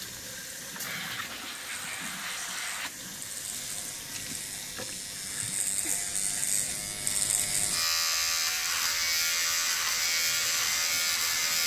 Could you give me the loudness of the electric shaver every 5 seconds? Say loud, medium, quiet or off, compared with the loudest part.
quiet, loud, loud.